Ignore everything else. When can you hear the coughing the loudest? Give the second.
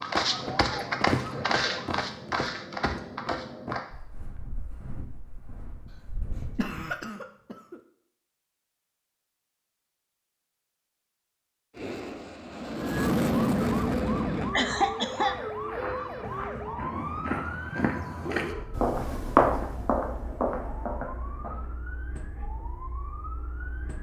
15 s.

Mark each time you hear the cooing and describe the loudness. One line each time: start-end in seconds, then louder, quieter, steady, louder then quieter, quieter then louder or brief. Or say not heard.
not heard.